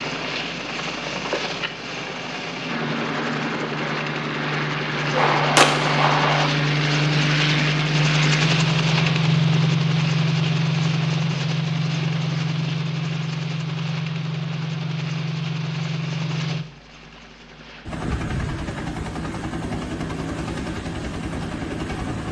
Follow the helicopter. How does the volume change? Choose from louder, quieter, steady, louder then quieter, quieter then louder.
louder then quieter.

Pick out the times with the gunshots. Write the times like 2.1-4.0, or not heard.
5.1-6.5.